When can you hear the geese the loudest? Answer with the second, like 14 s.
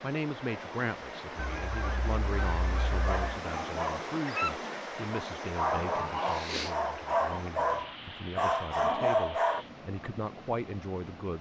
6 s.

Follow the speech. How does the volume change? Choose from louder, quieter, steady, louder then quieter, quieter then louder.
quieter then louder.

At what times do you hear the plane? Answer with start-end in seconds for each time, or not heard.
not heard.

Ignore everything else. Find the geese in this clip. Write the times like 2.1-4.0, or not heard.
1.4-3.4, 5.8-7.5.